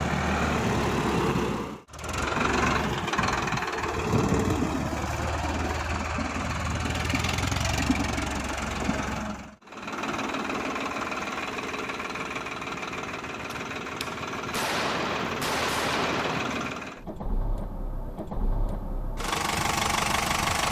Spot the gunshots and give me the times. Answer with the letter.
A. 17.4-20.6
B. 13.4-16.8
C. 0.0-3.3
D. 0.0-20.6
B.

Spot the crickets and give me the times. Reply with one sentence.
You can't hear the crickets here.